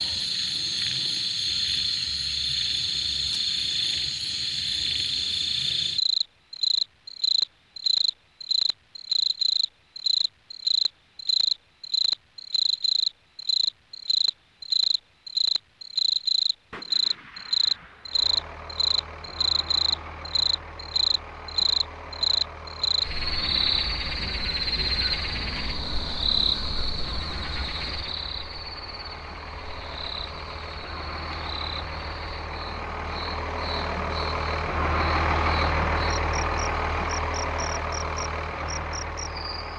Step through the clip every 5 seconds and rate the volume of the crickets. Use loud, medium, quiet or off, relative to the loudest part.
loud, loud, loud, loud, loud, medium, quiet, quiet.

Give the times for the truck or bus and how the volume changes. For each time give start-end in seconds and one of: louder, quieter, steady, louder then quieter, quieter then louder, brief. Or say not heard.
18.1-39.7 louder.